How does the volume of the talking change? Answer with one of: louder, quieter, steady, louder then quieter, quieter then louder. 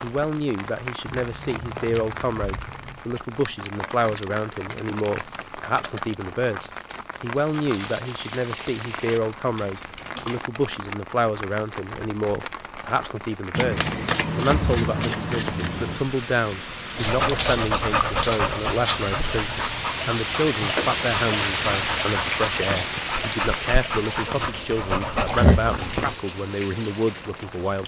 steady.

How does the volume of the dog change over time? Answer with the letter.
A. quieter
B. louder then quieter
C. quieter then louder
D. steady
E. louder
C.